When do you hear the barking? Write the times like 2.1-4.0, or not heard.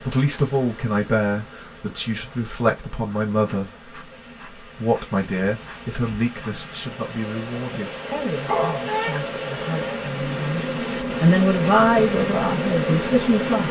7.7-9.1.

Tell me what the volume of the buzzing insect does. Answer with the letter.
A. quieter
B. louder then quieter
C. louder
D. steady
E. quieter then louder
C.